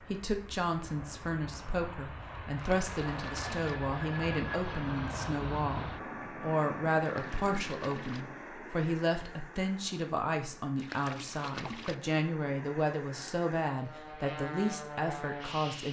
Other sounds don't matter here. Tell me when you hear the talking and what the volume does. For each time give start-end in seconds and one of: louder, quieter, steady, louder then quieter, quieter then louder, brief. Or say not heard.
0.1-15.8 steady.